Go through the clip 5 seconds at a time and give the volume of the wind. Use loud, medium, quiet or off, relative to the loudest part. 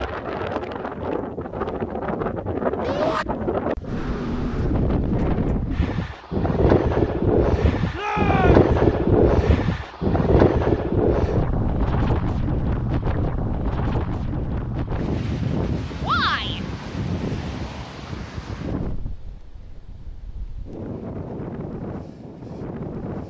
medium, loud, loud, medium, quiet.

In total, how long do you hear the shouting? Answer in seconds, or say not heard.
2 s.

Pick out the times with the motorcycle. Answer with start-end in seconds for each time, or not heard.
not heard.